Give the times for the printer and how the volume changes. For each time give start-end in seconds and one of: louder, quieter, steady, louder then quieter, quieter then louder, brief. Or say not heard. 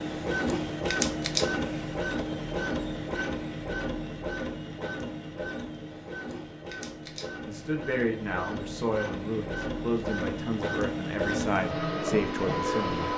0.0-13.1 quieter then louder.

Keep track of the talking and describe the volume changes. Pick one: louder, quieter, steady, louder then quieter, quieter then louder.
steady.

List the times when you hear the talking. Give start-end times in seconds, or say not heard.
7.4-13.1.